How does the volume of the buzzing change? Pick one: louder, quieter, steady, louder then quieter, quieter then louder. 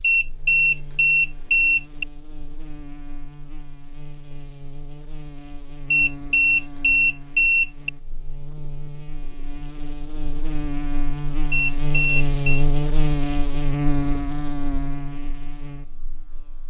louder.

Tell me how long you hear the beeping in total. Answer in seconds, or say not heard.
5 s.